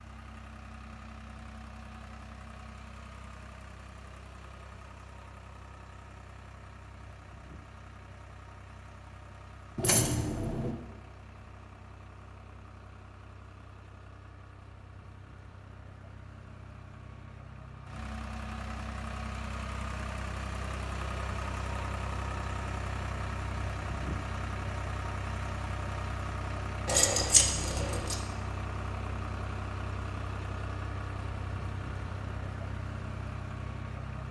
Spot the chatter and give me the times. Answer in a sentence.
You can't hear the chatter here.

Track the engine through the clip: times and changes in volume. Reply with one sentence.
You can hear the engine from 0.0 to 34.2 s, getting louder.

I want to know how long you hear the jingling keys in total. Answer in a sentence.
The jingling keys can be heard for 2 seconds in total.